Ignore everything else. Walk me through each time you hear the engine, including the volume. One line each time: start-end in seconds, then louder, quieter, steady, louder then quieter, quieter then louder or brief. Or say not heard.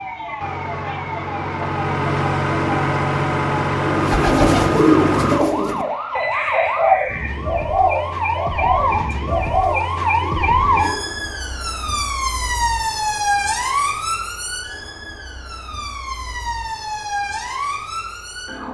0.0-5.4 louder.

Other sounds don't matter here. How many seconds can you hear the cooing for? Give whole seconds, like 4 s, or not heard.
7 s.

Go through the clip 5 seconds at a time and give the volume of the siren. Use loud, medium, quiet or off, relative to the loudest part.
medium, loud, loud, medium.